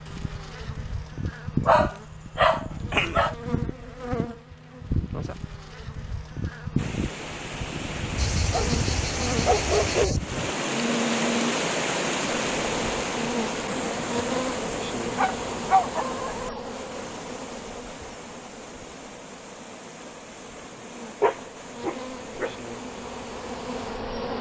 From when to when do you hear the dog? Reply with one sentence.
The dog can be heard from 1.6 to 3.4 s, from 8.2 to 10.2 s, from 15.2 to 16.6 s and from 21.2 to 22.5 s.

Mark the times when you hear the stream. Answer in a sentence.
The stream can be heard from 6.8 to 24.3 s.